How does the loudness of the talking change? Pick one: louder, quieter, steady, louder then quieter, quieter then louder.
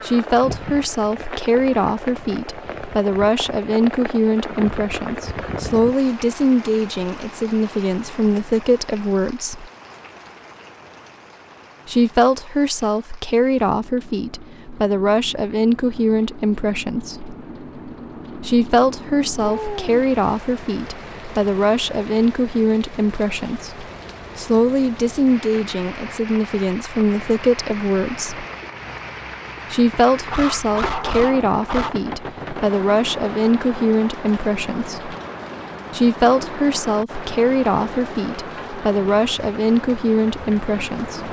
steady.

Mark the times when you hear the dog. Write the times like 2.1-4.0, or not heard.
30.3-31.9.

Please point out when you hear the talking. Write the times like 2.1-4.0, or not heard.
0.0-9.7, 11.8-17.4, 18.4-28.4, 29.7-35.1, 35.9-41.2.